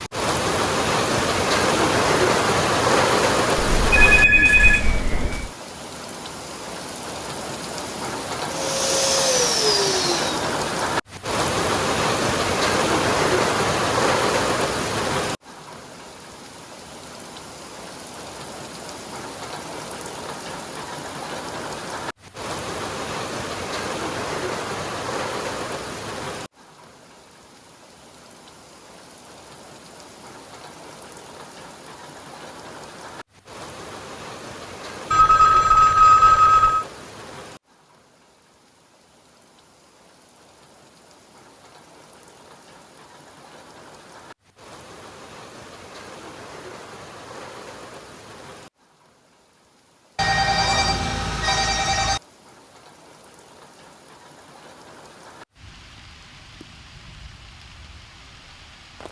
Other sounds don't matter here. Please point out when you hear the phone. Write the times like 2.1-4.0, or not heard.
3.5-5.5, 35.1-36.9, 50.1-52.2.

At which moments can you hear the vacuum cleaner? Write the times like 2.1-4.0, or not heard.
8.4-10.4.